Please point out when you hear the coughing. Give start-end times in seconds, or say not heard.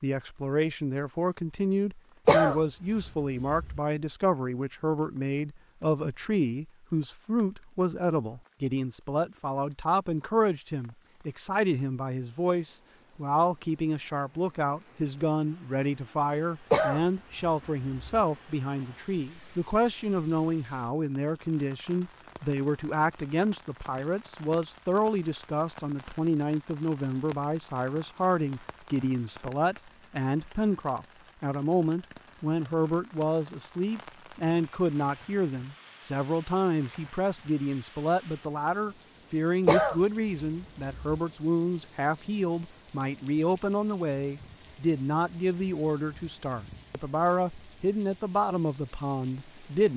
2.2-3.8, 16.7-18.2, 39.6-41.2.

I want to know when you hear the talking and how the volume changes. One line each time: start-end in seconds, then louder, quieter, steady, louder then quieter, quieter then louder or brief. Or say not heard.
0.0-49.9 steady.